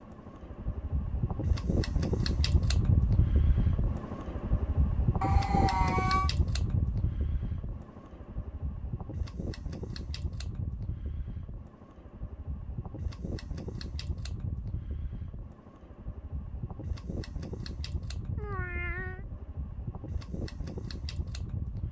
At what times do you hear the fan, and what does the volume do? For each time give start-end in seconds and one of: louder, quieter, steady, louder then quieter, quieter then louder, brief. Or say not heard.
0.0-21.8 quieter.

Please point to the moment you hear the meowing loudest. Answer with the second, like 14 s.
6 s.